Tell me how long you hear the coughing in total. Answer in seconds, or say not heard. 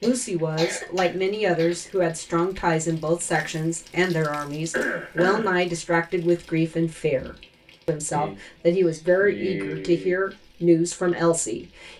5 s.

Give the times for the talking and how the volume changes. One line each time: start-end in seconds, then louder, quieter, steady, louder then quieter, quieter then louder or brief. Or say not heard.
0.0-11.9 steady.